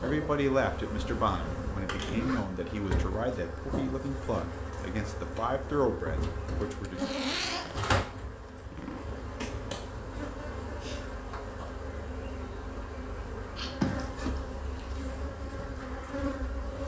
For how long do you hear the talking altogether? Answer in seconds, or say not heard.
7 s.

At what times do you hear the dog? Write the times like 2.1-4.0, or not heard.
not heard.